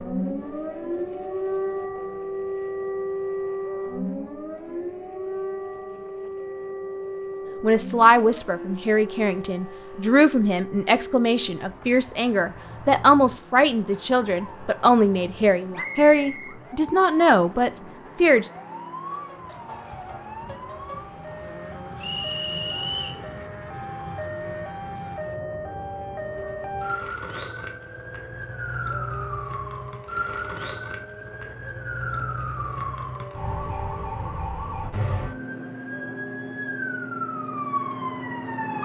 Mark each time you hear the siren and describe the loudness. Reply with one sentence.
You can hear the siren from 0.0 to 38.8 s, getting quieter then louder.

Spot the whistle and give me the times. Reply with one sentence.
You can hear the whistle from 15.8 to 17.2 s and from 21.9 to 23.2 s.